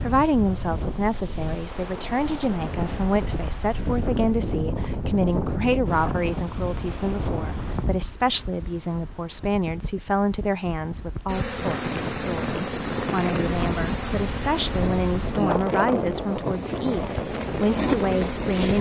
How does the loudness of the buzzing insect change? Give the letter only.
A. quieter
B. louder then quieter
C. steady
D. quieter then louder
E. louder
D.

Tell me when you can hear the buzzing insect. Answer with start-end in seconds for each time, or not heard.
11.2-18.7.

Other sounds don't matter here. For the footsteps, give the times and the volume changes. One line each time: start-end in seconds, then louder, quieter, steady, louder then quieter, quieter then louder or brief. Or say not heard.
not heard.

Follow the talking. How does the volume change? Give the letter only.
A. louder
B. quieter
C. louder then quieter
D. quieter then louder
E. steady
E.